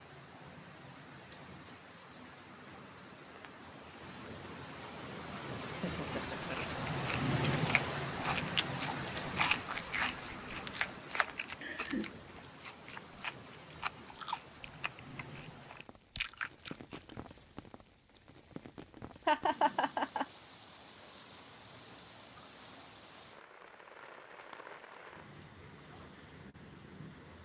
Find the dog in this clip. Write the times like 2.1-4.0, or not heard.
not heard.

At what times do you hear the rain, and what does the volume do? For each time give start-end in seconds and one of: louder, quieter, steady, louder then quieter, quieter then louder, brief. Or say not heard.
0.0-27.4 louder then quieter.